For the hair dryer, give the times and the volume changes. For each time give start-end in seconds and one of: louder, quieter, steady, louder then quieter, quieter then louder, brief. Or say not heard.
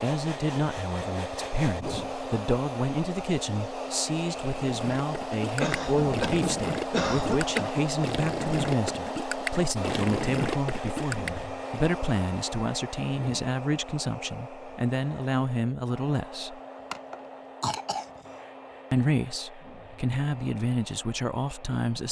0.0-22.0 quieter.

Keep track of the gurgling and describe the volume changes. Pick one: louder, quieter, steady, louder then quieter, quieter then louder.
louder.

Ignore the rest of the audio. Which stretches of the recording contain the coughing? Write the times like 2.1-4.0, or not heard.
5.6-7.8, 16.9-18.1.